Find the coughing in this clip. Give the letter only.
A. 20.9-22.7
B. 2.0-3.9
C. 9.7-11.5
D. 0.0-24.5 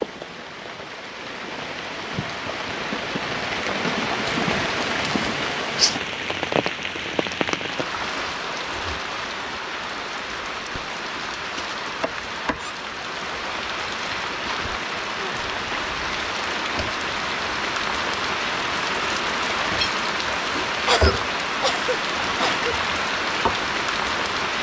A.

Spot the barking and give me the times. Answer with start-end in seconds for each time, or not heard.
not heard.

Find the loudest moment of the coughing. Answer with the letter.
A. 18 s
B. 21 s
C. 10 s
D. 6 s
B.